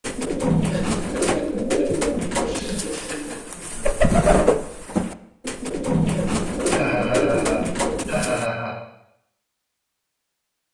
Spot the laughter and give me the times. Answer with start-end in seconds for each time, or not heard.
0.7-3.4, 6.7-8.8.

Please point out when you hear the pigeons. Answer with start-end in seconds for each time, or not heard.
0.0-8.4.